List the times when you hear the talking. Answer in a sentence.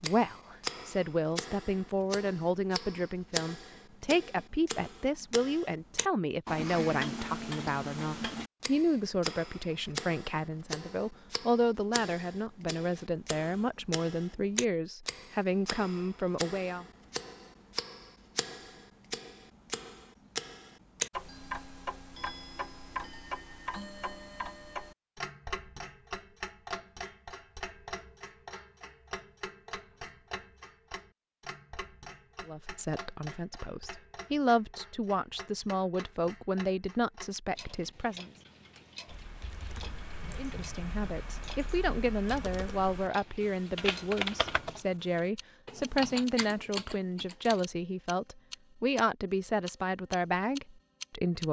You can hear the talking from 0.0 to 16.9 s, from 32.5 to 38.3 s and from 40.3 to 51.4 s.